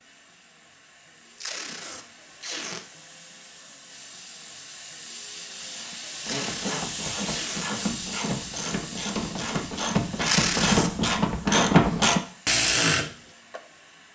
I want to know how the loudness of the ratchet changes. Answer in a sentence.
The volume of the ratchet goes up.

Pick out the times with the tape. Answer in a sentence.
You can hear the tape from 1.4 to 2.8 s, from 6.2 to 7.8 s and from 10.2 to 10.9 s.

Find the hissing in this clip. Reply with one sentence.
You can hear the hissing from 0.0 to 14.0 s.